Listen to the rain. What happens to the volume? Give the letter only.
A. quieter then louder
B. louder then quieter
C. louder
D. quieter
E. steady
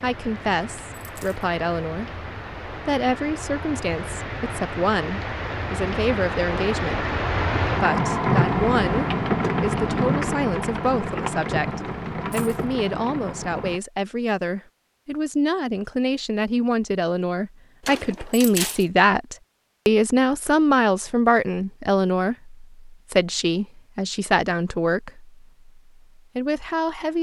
B.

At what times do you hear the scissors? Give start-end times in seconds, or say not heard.
not heard.